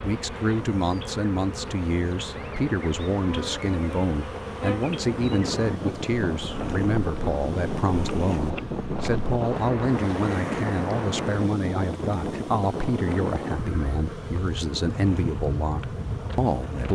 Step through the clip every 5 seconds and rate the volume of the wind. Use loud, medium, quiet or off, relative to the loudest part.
off, loud, loud, loud.